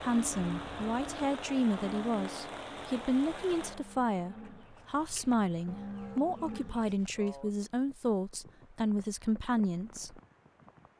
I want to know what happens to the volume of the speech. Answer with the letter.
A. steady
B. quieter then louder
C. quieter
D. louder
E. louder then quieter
A.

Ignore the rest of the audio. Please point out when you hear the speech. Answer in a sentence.
You can hear the speech from 0.0 to 10.2 s.